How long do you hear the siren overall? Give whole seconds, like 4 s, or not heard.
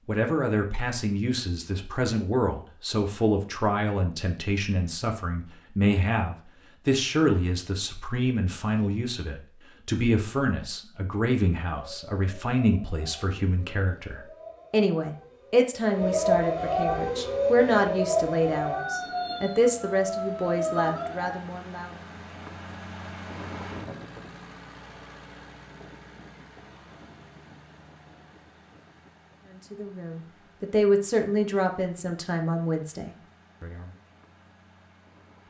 10 s.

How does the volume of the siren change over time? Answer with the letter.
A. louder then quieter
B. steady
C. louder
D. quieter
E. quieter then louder
A.